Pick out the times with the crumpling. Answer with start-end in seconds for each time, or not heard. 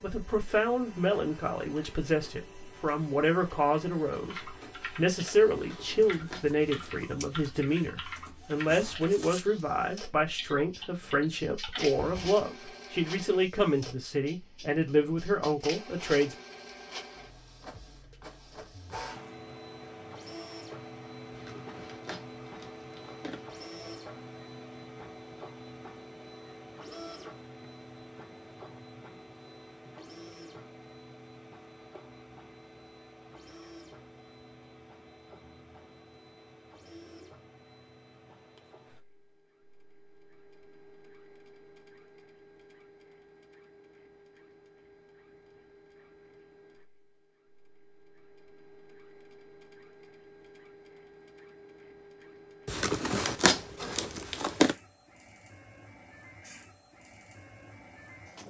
5.5-7.0, 21.3-23.6, 52.6-54.8.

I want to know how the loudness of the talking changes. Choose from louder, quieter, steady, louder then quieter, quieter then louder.
steady.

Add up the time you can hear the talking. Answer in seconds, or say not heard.
16 s.